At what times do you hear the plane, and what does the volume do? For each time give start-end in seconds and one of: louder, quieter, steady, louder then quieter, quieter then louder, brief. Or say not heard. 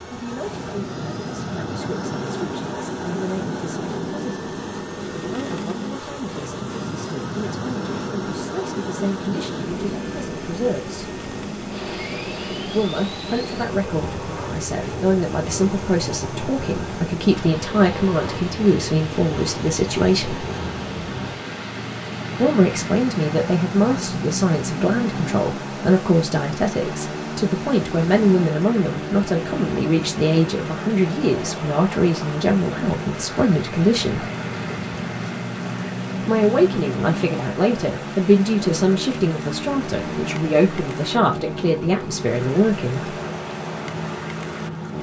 0.0-44.9 steady.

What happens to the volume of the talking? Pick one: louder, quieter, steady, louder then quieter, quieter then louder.
louder.